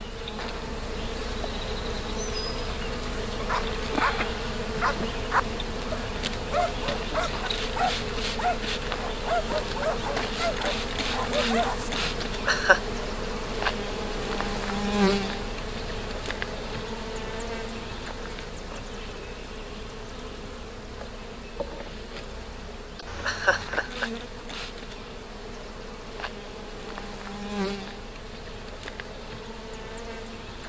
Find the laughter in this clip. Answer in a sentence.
The laughter can be heard from 12.2 to 12.8 s and from 23.2 to 24.1 s.